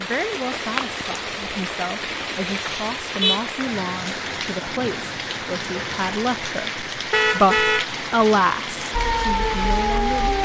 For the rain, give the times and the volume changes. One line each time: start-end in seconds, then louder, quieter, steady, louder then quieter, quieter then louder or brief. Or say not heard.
0.0-10.3 steady.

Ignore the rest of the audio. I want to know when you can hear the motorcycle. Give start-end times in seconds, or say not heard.
not heard.